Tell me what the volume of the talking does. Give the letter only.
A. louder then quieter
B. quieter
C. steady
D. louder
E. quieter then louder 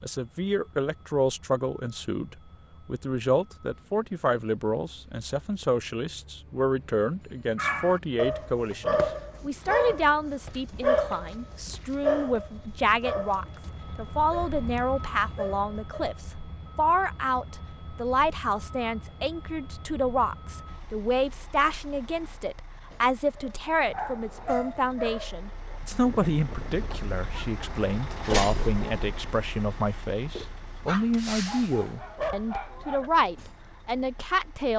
C.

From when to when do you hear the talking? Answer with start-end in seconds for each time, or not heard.
0.0-34.7.